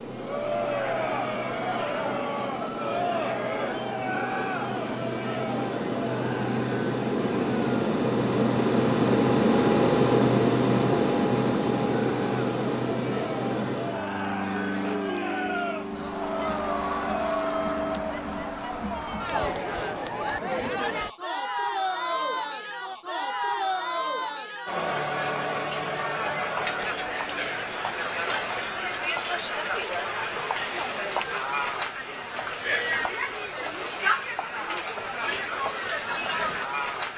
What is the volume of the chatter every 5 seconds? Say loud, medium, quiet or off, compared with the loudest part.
loud, medium, medium, loud, loud, loud, loud, loud.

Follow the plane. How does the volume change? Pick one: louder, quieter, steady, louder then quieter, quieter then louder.
louder then quieter.